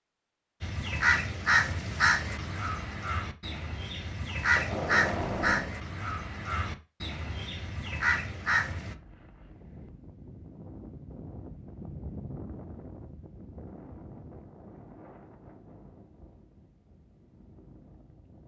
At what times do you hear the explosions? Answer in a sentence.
You can hear the explosions from 4.5 to 5.8 s.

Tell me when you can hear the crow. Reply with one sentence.
You can hear the crow from 0.6 to 8.9 s.